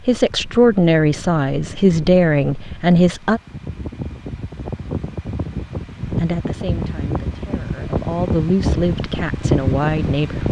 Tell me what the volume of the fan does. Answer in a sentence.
The volume of the fan goes up.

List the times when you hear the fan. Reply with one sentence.
The fan can be heard from 0.0 to 10.4 s.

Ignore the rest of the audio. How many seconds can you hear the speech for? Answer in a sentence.
The speech can be heard for 8 seconds in total.